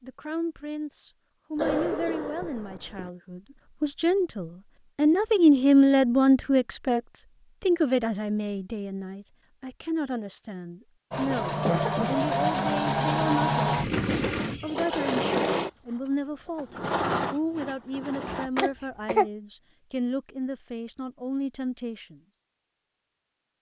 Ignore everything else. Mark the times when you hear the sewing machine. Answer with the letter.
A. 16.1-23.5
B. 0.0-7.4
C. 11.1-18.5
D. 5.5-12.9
C.